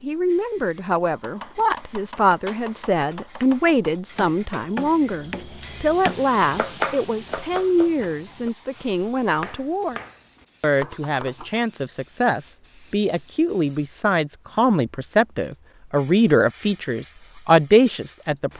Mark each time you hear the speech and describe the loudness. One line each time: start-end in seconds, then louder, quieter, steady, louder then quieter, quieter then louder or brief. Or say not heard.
0.0-10.0 steady
10.6-18.5 louder.